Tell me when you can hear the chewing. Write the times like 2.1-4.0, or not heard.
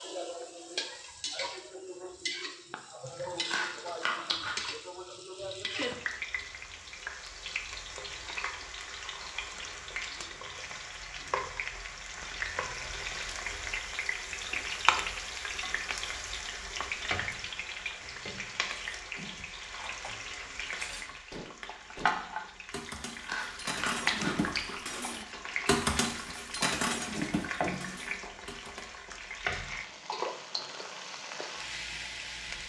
3.0-4.6, 23.0-24.8.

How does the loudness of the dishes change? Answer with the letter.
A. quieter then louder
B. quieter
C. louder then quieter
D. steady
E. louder
E.